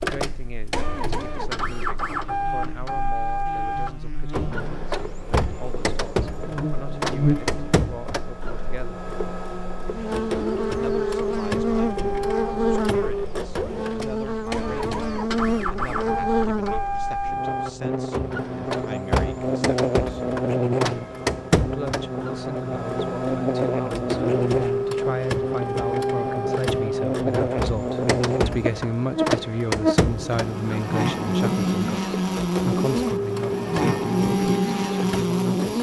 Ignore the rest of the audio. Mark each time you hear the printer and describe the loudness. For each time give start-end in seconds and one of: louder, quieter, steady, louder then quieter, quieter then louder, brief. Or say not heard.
0.0-35.7 steady.